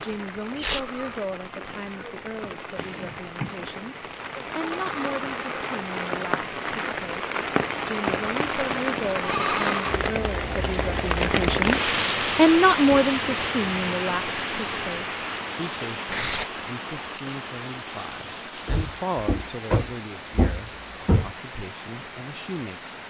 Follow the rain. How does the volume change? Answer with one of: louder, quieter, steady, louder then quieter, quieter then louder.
louder then quieter.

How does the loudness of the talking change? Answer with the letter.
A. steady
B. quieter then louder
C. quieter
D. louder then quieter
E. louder
D.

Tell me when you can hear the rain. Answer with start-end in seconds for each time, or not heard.
0.0-23.0.